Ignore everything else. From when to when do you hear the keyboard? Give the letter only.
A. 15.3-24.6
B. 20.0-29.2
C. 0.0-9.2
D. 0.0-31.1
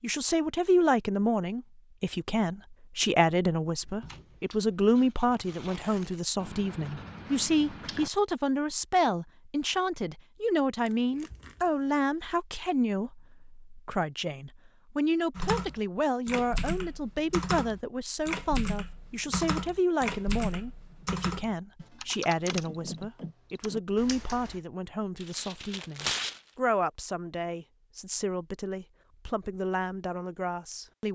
A.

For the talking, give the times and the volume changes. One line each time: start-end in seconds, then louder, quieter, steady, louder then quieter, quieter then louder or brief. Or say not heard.
0.0-31.1 quieter.